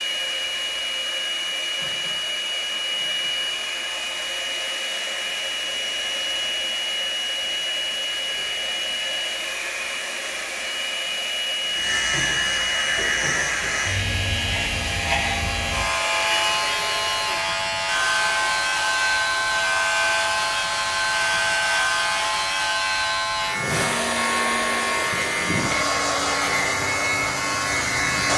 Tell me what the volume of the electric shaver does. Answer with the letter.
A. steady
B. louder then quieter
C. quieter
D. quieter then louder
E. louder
E.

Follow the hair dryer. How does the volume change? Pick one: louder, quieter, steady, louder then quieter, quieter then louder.
steady.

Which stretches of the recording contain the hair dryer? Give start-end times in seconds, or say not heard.
0.0-28.3.